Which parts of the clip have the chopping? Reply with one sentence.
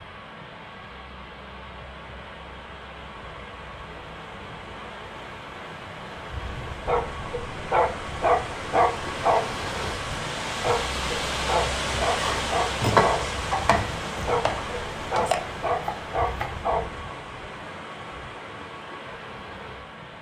The chopping can be heard from 12.2 to 16.6 s.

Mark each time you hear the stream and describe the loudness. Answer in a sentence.
You can hear the stream from 0.0 to 20.1 s, getting louder then quieter.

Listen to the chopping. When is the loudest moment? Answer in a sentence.
The volume of the chopping peaks at 13 seconds.